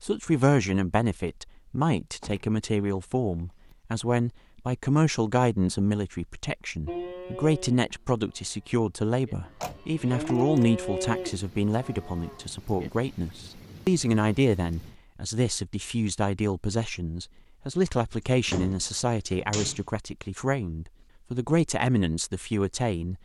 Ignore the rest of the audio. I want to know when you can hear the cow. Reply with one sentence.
You can hear the cow from 6.8 to 12.9 s.